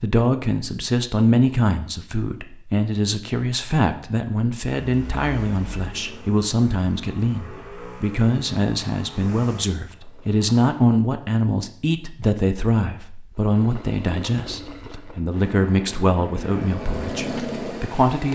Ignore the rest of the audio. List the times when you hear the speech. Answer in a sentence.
The speech can be heard from 0.0 to 18.3 s.